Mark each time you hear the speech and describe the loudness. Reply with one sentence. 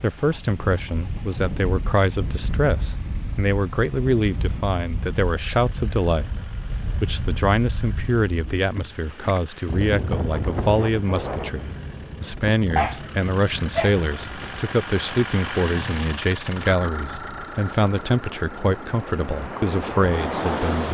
You can hear the speech from 0.0 to 20.8 s, at a steady volume.